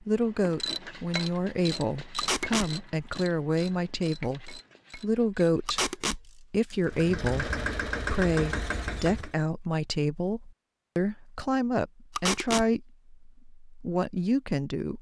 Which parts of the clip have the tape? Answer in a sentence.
The tape can be heard from 2.1 to 2.7 s, from 5.7 to 6.2 s and from 12.2 to 12.7 s.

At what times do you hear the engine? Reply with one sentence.
The engine can be heard from 6.8 to 9.3 s.